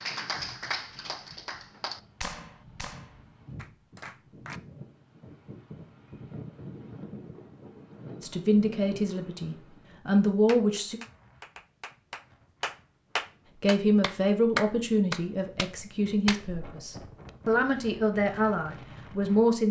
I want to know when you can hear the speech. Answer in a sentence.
The speech can be heard from 8.2 to 11.0 s and from 13.6 to 19.6 s.